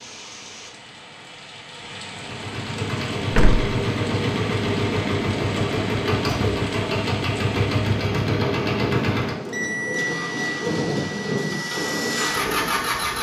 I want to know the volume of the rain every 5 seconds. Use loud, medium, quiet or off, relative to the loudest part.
medium, medium, loud.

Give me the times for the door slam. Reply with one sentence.
The door slam can be heard from 3.3 to 3.7 s.